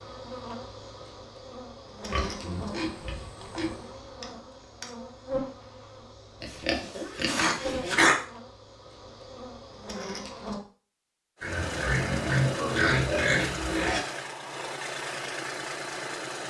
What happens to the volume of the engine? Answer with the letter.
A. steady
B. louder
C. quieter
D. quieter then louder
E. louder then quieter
A.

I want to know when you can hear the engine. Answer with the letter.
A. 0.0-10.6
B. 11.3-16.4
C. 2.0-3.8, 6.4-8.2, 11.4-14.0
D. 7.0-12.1
B.